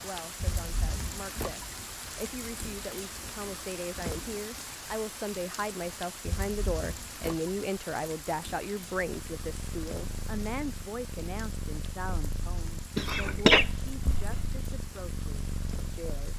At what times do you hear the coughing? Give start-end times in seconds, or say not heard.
12.9-14.5.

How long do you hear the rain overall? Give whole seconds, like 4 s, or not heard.
16 s.